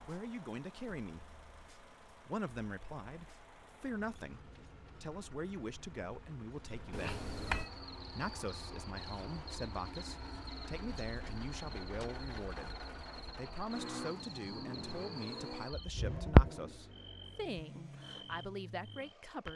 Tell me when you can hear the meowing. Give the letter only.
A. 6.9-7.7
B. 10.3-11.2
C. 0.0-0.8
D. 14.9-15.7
A.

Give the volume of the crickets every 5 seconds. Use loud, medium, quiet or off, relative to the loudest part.
off, quiet, quiet, loud.